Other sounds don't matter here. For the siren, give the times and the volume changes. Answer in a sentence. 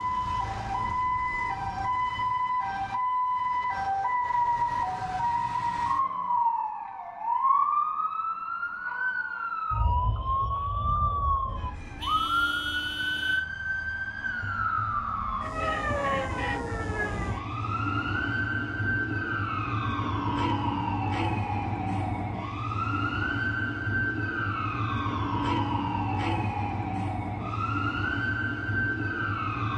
You can hear the siren from 0.0 to 29.7 s, at a steady volume.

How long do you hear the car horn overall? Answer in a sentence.
You can hear the car horn for 2 seconds altogether.